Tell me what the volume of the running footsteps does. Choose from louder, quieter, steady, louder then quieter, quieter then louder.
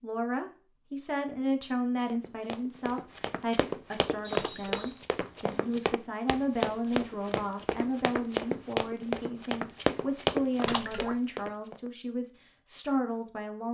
louder.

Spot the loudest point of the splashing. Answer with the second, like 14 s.
11 s.